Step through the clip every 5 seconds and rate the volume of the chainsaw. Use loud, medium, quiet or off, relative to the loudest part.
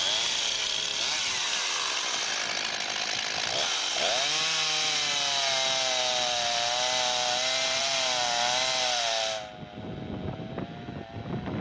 loud, loud, quiet.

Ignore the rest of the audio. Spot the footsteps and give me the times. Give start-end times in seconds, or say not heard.
not heard.